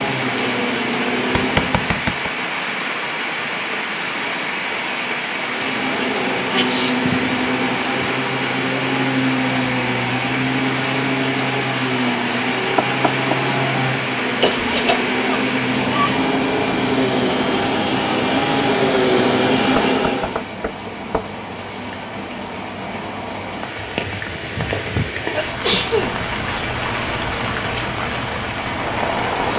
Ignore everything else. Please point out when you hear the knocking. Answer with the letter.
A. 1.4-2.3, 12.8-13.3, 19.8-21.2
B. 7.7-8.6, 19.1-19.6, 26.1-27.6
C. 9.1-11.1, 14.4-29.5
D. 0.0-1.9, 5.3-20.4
A.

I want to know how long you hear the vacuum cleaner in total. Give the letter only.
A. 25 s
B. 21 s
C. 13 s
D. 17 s
D.